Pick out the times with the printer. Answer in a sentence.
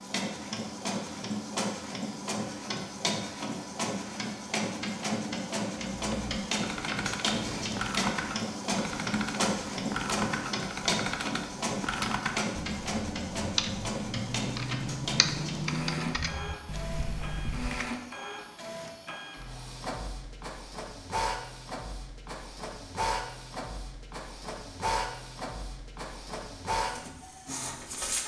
The printer can be heard from 0.0 to 28.2 s.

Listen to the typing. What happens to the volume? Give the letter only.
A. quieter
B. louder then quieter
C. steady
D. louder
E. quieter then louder
C.